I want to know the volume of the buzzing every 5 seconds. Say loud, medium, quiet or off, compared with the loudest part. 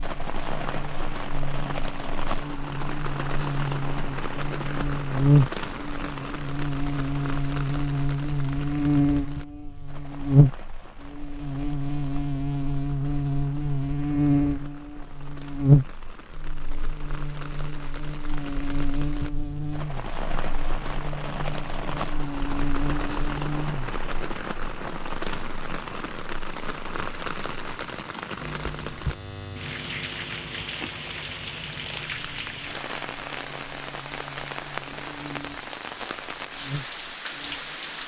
medium, loud, loud, loud, medium, quiet, quiet, quiet.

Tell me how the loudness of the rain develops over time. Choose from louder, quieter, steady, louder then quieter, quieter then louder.
quieter then louder.